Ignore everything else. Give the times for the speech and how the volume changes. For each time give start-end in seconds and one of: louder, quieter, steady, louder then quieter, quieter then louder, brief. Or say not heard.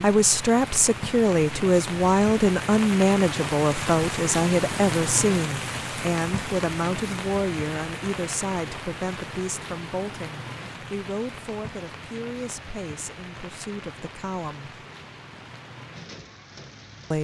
0.0-14.8 quieter.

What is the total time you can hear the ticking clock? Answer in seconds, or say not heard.
not heard.